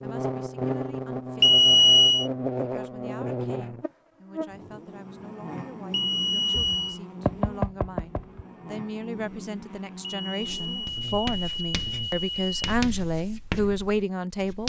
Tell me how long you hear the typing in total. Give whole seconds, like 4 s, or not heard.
not heard.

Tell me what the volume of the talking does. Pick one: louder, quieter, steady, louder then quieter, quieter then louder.
louder.